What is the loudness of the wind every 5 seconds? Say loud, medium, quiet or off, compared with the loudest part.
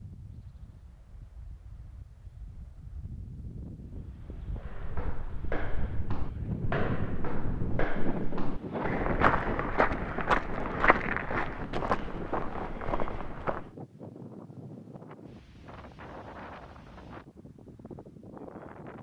quiet, loud, medium, medium.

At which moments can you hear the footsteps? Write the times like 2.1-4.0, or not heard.
4.6-13.7.